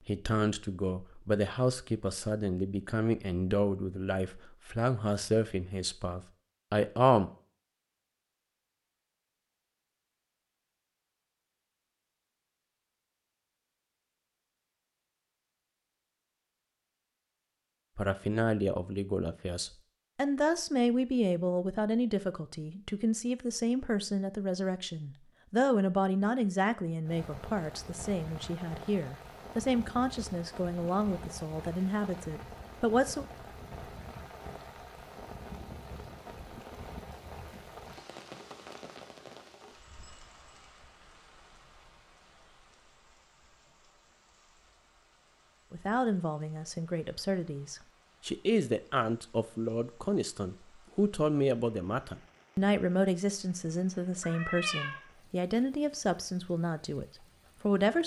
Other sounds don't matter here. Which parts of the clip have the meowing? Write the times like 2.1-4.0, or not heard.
54.2-55.0.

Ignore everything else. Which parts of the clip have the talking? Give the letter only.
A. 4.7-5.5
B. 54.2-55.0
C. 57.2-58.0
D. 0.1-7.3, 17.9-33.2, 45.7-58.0
D.